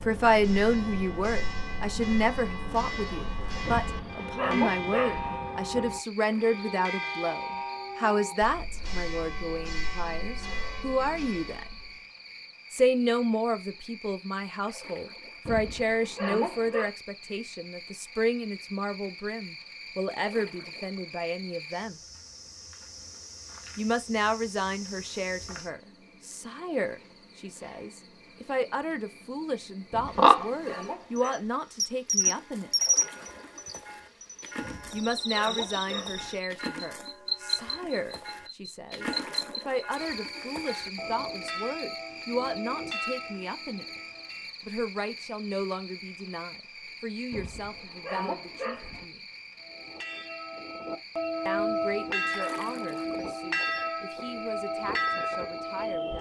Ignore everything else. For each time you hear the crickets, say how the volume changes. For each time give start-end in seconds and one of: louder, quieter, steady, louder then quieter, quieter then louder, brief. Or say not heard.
0.0-56.1 louder then quieter.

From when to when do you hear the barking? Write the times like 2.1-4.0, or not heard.
3.6-5.4, 15.4-16.9, 29.9-31.5, 34.6-36.4, 47.3-49.0.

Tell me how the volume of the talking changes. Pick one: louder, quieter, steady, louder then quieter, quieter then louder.
quieter.